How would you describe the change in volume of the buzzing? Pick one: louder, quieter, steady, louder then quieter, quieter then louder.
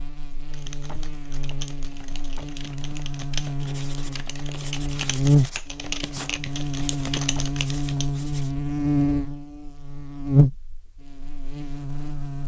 louder.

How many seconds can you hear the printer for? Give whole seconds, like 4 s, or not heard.
not heard.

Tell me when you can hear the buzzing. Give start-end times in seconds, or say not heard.
0.0-12.4.